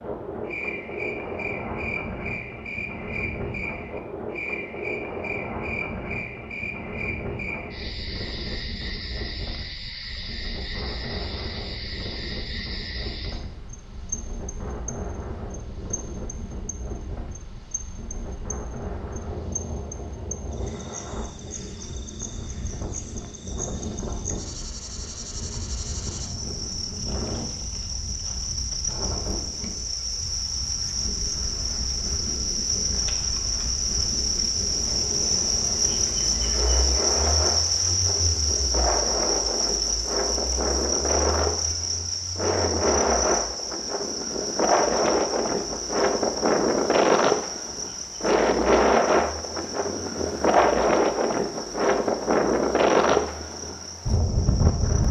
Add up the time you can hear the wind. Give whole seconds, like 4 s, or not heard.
55 s.